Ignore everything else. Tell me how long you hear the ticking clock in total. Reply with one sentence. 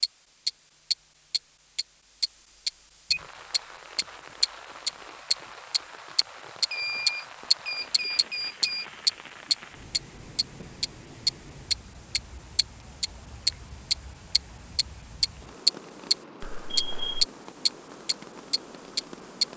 The ticking clock can be heard for 19 seconds in total.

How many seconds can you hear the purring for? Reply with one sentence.
The purring can't be heard in this clip.